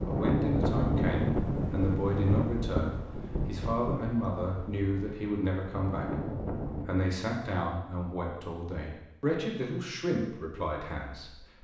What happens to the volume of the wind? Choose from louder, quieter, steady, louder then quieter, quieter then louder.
quieter then louder.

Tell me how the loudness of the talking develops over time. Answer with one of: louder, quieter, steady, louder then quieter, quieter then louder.
steady.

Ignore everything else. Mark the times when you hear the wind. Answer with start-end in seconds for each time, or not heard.
0.0-6.8.